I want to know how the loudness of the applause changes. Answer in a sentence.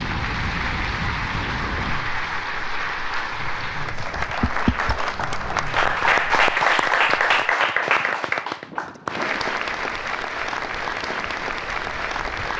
The volume of the applause goes up, then down.